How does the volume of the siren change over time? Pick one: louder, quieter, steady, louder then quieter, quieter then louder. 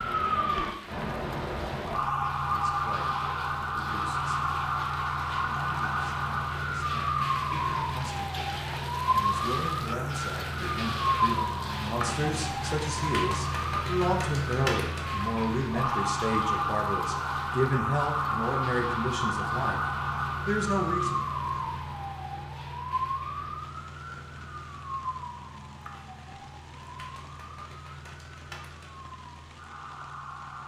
quieter.